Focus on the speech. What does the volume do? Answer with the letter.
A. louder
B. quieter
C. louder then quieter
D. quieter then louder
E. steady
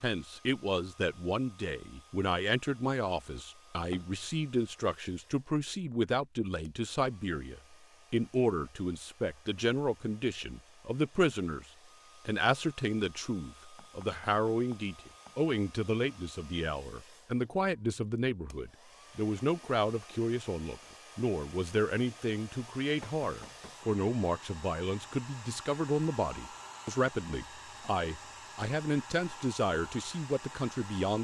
E.